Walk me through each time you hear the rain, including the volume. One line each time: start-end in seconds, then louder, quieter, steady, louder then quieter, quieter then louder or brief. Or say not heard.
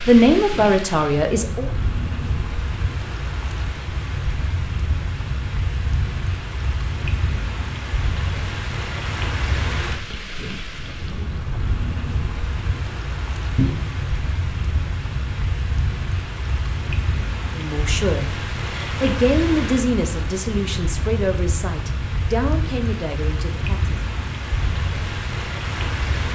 0.0-26.3 steady.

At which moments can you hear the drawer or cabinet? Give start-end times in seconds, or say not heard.
13.6-14.0.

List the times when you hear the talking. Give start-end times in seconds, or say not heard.
0.1-1.7, 17.5-23.9.